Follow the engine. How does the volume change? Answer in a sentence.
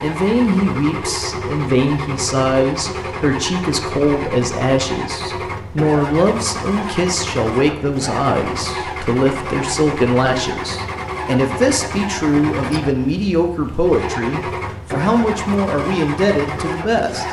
The loudness of the engine stays about the same.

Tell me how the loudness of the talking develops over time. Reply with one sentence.
The loudness of the talking stays about the same.